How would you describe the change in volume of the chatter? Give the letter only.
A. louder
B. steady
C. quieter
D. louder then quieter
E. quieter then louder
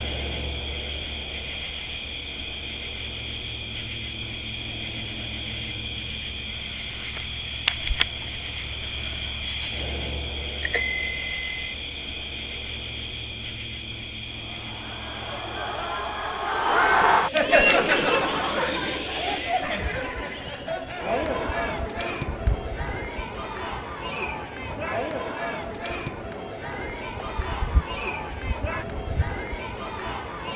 C.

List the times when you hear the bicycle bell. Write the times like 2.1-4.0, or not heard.
10.6-11.8.